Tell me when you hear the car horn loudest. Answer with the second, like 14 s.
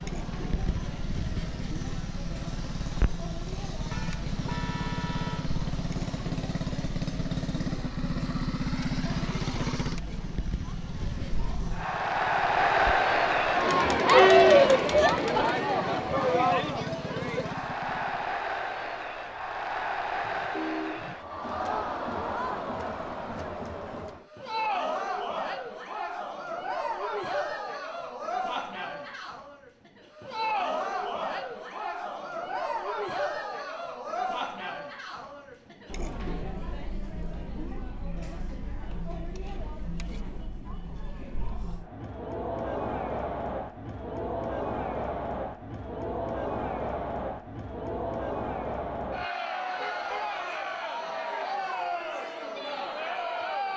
21 s.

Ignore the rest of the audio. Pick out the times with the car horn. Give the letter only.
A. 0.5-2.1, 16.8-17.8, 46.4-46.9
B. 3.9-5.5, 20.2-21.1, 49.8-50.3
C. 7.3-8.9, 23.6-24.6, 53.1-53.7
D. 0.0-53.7
B.